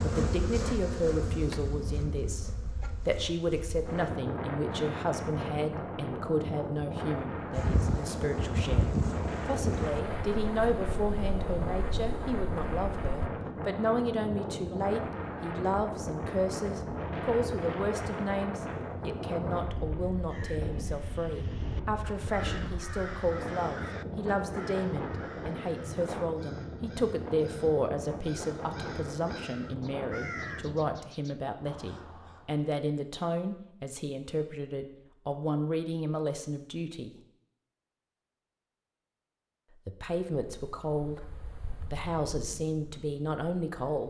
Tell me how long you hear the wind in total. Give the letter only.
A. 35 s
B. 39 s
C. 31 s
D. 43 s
C.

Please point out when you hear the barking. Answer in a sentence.
The barking can't be heard in this clip.